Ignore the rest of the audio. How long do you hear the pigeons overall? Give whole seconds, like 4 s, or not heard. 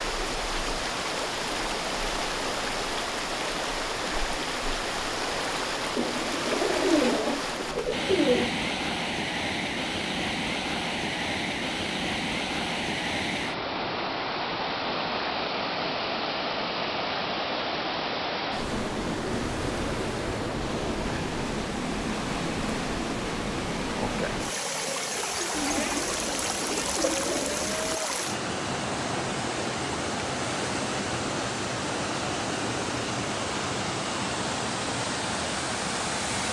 5 s.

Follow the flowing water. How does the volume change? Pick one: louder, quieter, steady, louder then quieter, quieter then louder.
steady.